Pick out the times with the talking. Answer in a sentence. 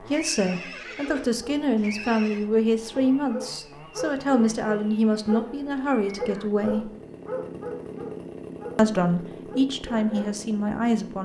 You can hear the talking from 0.0 to 7.0 s and from 8.8 to 11.2 s.